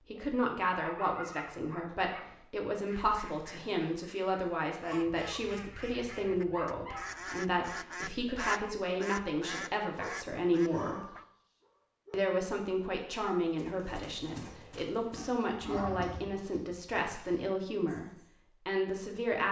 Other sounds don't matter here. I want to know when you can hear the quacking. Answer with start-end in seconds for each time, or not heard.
2.9-11.2.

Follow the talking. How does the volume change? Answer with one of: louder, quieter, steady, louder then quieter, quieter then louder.
steady.